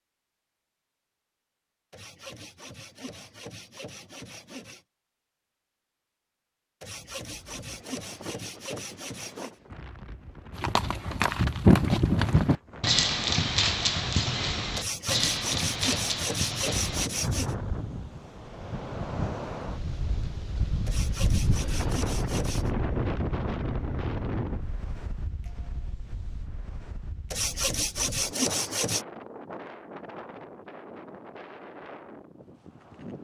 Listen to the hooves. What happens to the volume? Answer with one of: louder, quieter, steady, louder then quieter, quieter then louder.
quieter.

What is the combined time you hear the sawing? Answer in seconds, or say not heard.
12 s.